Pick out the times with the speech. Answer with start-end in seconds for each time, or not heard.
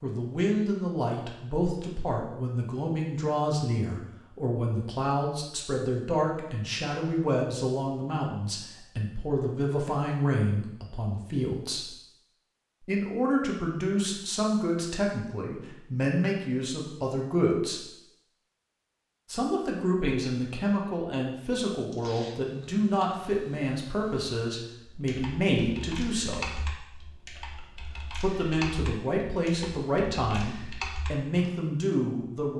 0.0-11.9, 12.8-17.9, 19.3-26.6, 27.6-32.5.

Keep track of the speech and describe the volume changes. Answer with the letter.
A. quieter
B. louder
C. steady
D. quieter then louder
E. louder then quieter
C.